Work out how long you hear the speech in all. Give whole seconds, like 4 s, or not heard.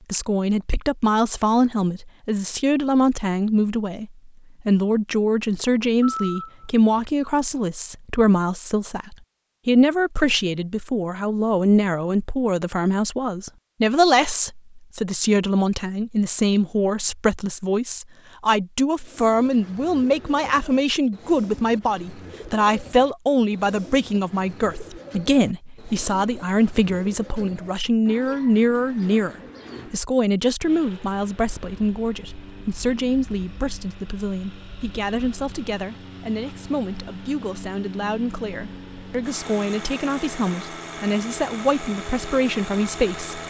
43 s.